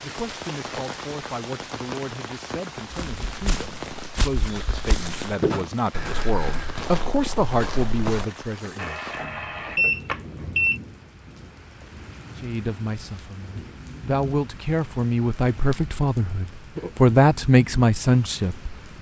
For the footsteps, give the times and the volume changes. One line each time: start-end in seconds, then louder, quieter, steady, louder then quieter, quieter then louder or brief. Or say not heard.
2.9-8.2 louder then quieter.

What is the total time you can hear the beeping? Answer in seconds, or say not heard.
2 s.